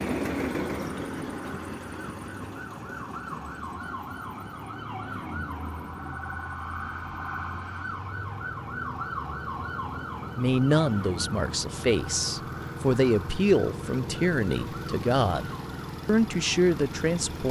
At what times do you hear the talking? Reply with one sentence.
The talking can be heard from 10.3 to 17.4 s.